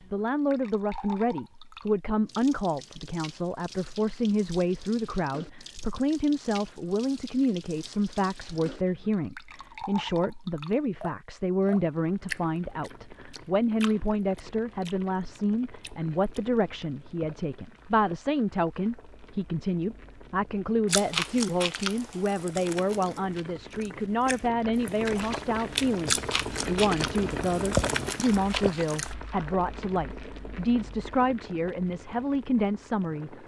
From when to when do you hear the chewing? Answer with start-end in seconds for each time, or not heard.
20.9-29.1.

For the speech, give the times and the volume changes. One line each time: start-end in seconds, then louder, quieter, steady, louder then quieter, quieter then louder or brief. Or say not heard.
0.1-33.4 steady.